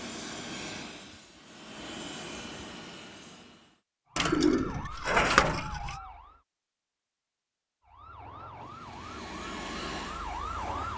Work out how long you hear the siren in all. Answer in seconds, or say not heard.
5 s.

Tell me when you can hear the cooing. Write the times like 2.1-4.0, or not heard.
4.2-6.0.